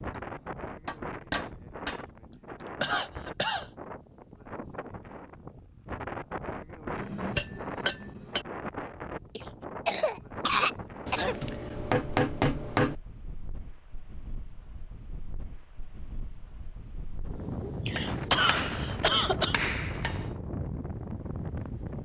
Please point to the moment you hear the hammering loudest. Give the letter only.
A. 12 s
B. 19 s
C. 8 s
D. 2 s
A.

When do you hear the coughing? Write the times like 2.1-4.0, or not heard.
2.3-3.7, 9.3-11.3, 17.9-19.6.